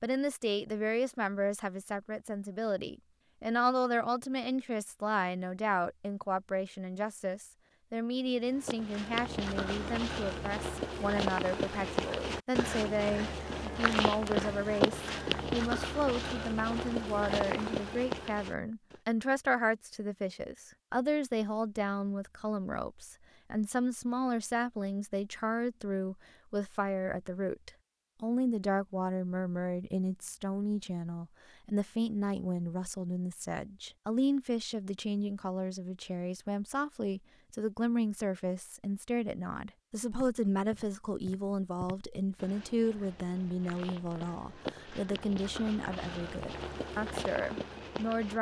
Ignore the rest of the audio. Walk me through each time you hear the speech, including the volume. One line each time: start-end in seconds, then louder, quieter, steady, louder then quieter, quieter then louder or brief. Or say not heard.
0.0-48.3 steady.